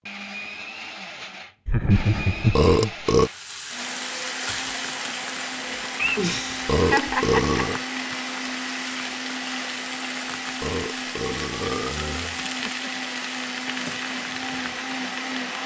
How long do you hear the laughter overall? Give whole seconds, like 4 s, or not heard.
4 s.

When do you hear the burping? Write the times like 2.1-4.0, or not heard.
2.5-3.3, 6.7-7.8, 10.6-12.4.